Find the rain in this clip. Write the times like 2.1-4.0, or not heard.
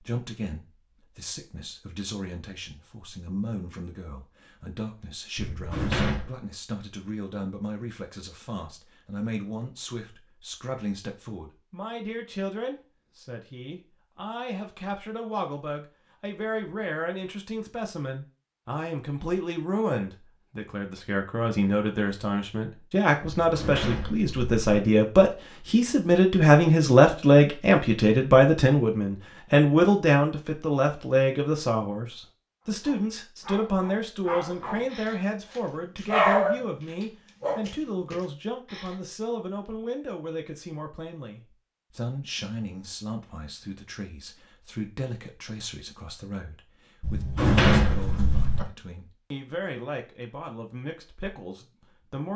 not heard.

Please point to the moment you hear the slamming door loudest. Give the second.
48 s.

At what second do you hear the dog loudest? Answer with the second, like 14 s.
36 s.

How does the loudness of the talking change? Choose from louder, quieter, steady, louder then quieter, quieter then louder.
louder then quieter.